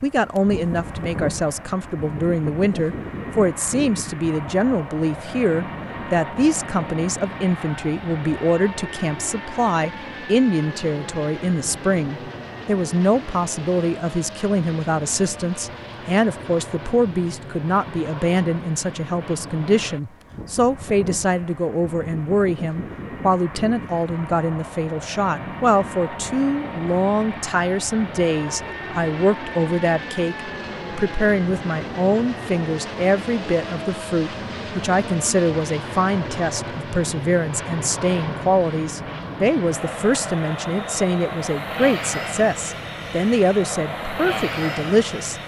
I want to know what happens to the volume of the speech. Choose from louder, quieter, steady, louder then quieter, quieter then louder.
steady.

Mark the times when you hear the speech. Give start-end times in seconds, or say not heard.
0.0-45.4.